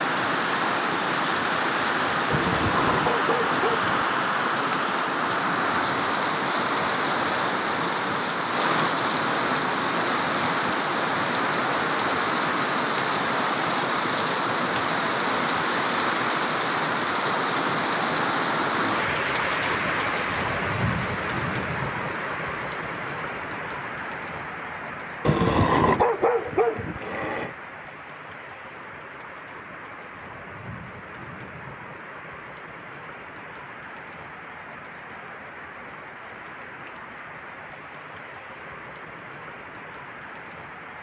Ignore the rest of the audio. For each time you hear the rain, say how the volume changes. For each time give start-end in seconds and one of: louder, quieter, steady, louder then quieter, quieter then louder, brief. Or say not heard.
0.0-40.9 quieter.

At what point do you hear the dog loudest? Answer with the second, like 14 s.
26 s.